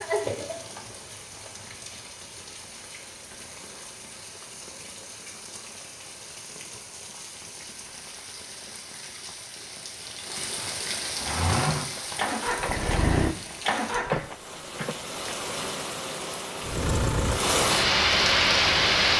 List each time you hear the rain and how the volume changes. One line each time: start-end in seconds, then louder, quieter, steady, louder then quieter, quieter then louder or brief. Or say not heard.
0.0-19.1 louder.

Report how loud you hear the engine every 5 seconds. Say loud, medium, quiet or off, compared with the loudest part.
off, off, loud, medium.